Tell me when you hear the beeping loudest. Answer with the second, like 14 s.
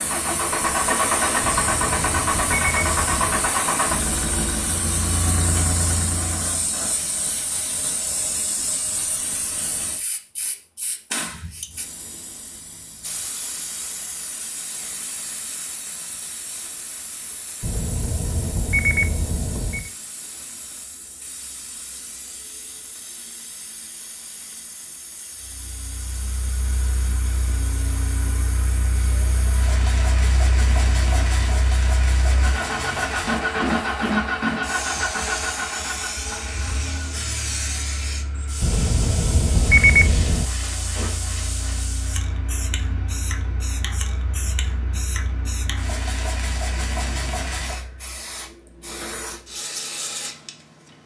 40 s.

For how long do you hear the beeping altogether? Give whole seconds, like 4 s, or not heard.
6 s.